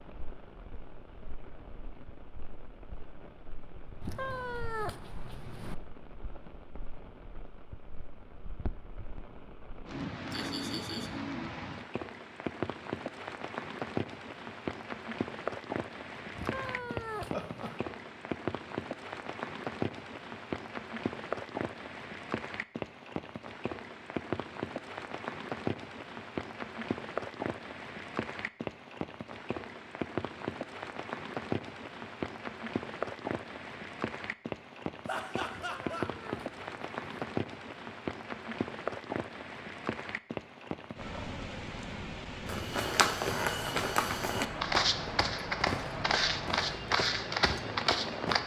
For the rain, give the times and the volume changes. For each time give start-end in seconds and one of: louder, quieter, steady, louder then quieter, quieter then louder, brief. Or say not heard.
0.0-48.4 louder.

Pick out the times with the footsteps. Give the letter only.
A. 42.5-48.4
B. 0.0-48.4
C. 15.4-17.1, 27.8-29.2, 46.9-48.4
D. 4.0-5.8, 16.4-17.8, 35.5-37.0
A.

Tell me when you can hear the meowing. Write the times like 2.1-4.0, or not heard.
4.0-5.8, 16.4-17.8, 35.5-37.0.